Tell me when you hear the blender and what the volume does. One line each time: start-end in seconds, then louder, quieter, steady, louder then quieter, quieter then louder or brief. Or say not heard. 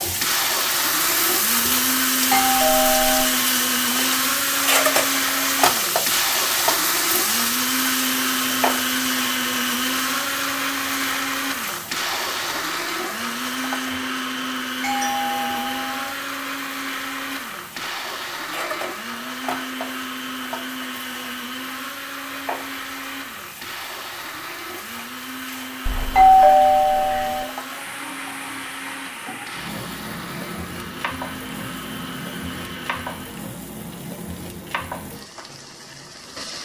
0.0-33.5 quieter.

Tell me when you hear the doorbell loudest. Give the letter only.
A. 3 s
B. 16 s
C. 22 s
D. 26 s
D.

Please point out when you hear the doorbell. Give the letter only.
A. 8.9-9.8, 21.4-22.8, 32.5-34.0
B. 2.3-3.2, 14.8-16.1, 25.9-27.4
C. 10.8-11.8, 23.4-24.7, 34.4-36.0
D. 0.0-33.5
B.